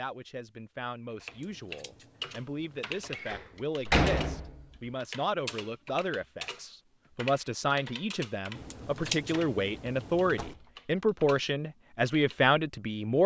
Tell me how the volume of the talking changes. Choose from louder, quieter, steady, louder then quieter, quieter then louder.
louder.